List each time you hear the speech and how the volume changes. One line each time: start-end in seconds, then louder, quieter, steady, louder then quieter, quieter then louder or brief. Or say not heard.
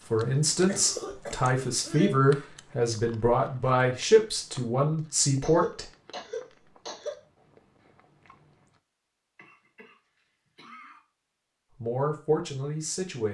0.1-5.8 steady
11.7-13.3 brief.